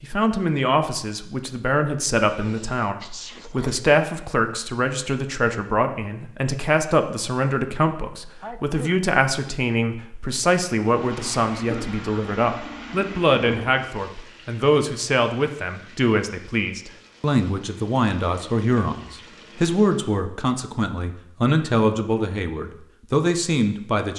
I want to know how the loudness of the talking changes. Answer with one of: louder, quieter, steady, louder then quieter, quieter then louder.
steady.